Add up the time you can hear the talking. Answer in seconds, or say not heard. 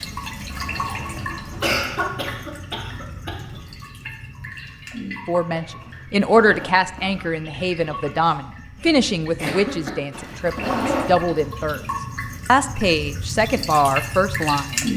9 s.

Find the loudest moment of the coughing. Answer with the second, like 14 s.
2 s.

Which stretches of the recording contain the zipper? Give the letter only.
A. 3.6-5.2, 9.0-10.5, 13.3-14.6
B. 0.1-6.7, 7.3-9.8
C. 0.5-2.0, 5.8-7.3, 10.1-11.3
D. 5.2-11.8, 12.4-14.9
C.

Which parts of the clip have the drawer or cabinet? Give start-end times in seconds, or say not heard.
not heard.